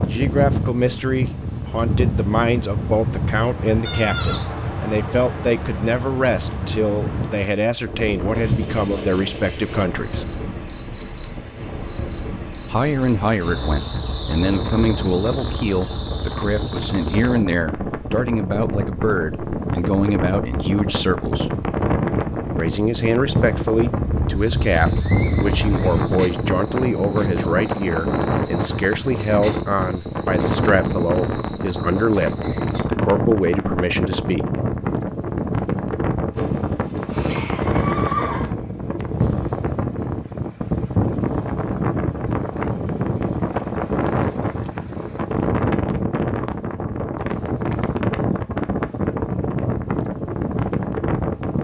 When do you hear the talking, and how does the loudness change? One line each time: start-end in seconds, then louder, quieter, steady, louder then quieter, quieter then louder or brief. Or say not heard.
0.0-10.2 steady
12.7-21.6 steady
22.6-34.5 steady.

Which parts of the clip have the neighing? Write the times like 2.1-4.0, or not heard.
3.9-4.5, 24.1-26.0, 36.4-38.5.